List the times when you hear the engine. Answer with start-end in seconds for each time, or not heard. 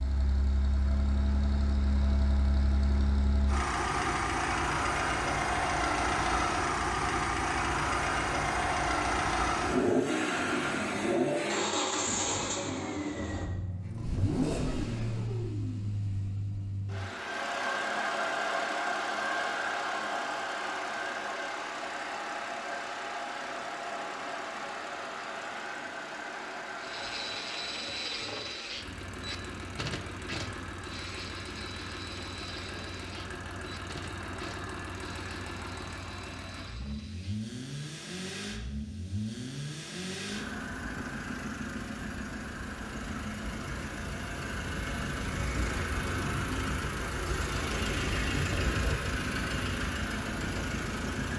0.0-51.3.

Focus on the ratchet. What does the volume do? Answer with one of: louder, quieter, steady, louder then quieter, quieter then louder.
quieter.